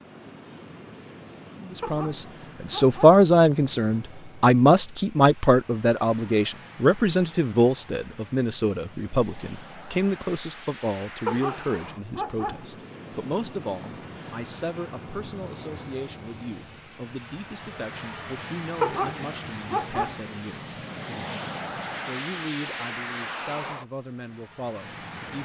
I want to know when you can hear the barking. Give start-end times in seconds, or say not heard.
1.8-3.2, 11.2-12.7, 18.8-20.2.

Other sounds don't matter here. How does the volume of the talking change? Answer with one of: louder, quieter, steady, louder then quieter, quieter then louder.
quieter.